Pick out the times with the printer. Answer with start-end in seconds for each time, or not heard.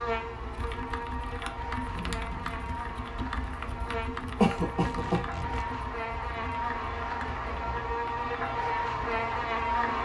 not heard.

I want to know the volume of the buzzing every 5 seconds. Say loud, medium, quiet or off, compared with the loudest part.
medium, loud.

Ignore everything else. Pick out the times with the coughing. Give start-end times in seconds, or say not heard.
4.3-5.2.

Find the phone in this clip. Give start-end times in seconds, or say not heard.
not heard.